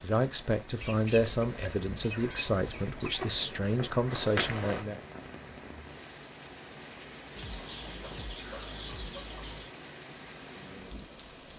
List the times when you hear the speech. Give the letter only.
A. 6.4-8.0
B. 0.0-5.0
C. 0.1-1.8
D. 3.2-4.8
B.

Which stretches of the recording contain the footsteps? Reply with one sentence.
You can hear the footsteps from 3.2 to 4.8 s.